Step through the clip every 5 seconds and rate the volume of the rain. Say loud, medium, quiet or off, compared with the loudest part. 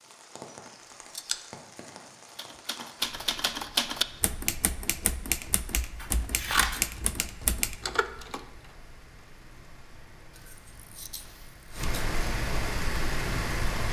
quiet, quiet, loud.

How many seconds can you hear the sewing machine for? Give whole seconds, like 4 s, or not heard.
not heard.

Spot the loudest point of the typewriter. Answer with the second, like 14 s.
4 s.